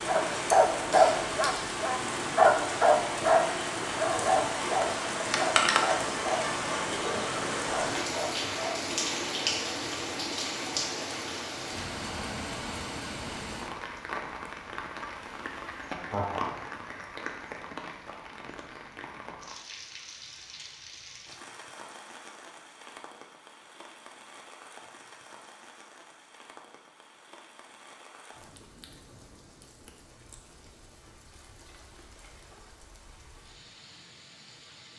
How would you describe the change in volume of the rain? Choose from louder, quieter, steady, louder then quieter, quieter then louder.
quieter.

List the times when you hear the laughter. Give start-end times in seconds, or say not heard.
15.9-16.6.